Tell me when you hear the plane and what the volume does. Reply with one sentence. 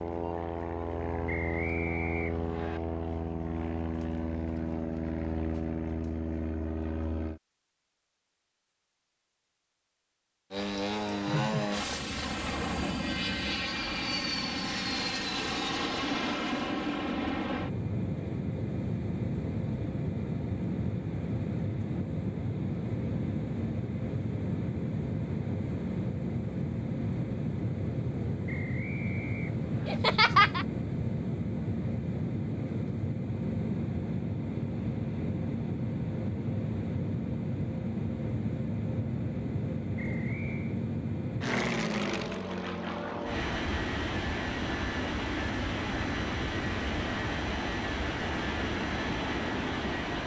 You can hear the plane from 0.0 to 7.4 s, at a steady volume; and from 10.5 to 50.2 s, at a steady volume.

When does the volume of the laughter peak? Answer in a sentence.
The loudest moment of the laughter is at 30 seconds.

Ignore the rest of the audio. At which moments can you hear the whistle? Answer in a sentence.
The whistle can be heard from 1.2 to 2.8 s, from 28.4 to 30.0 s and from 40.0 to 40.8 s.